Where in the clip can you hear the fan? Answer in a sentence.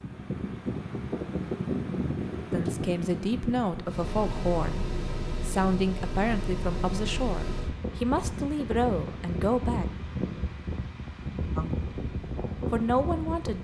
You can hear the fan from 0.0 to 13.5 s.